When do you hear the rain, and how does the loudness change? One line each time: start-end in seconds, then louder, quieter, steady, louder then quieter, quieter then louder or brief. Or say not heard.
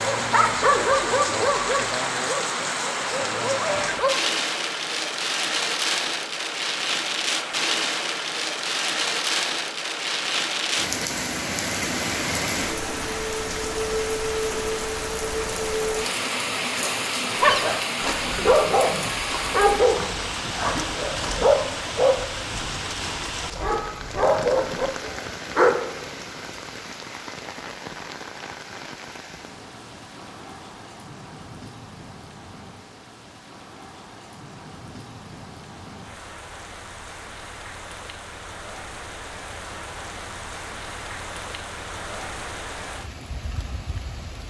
0.0-44.4 quieter.